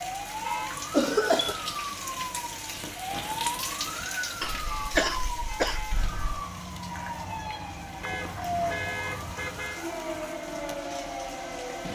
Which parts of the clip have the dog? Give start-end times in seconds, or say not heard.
not heard.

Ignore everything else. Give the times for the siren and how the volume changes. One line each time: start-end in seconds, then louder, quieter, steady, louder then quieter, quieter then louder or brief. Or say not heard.
0.0-11.9 steady.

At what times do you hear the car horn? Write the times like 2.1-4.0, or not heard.
0.4-0.8, 4.7-6.1, 8.0-9.8.